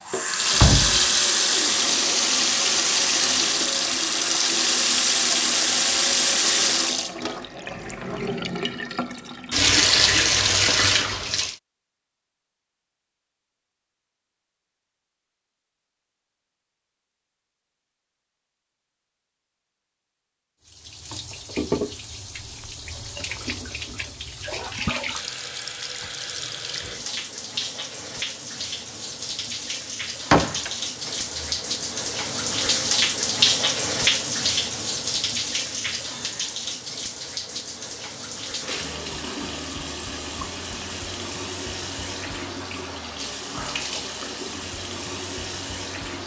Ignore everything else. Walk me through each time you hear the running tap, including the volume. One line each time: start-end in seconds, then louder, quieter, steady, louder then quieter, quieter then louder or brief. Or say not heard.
0.1-11.6 quieter then louder
20.6-46.2 louder then quieter.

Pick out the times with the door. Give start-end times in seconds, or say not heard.
0.5-1.1, 30.3-31.1.